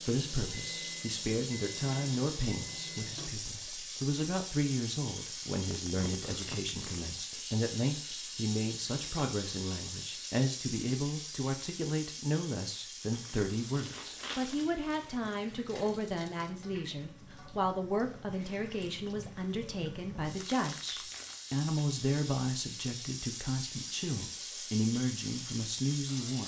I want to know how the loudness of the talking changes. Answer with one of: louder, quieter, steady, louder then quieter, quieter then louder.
steady.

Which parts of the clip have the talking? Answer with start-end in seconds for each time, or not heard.
0.0-26.4.